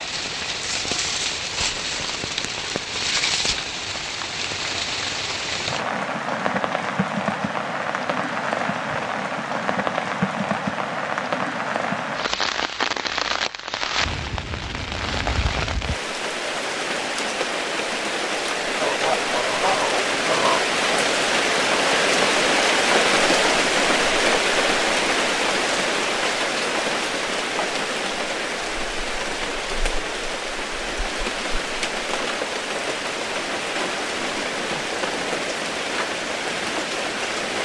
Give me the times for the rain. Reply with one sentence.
The rain can be heard from 0.0 to 37.5 s.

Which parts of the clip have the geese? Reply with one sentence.
You can hear the geese from 18.8 to 20.6 s.